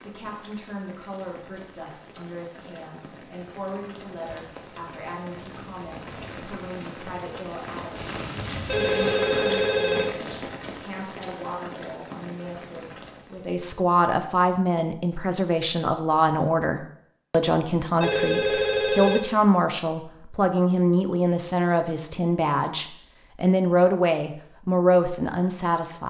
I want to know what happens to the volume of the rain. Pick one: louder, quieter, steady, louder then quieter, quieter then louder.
louder then quieter.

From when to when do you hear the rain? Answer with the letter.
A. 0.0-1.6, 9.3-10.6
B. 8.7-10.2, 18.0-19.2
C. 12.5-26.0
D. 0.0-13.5
D.